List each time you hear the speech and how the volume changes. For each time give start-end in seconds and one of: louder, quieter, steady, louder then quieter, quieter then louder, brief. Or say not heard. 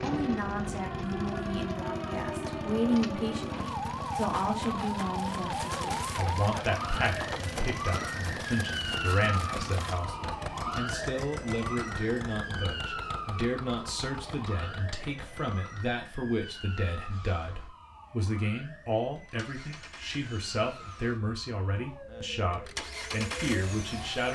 0.0-24.3 steady.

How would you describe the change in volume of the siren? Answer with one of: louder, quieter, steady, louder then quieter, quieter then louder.
quieter.